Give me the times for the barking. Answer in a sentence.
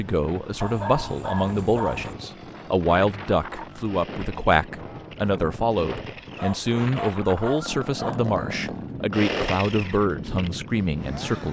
You can hear the barking from 0.6 to 2.1 s and from 6.3 to 8.2 s.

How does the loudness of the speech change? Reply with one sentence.
The volume of the speech stays about the same.